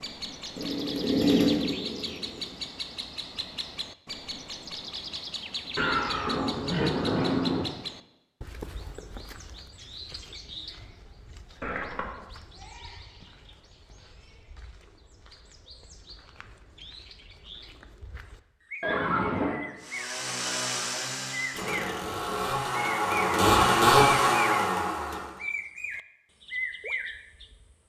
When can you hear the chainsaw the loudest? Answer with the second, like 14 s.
24 s.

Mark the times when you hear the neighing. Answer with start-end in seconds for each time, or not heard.
5.8-7.7, 11.6-12.2, 18.8-19.6.